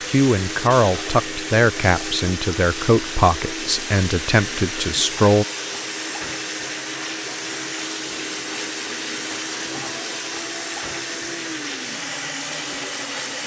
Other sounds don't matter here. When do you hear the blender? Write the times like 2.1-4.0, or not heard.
0.0-13.4.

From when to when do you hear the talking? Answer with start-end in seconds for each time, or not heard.
0.1-5.5.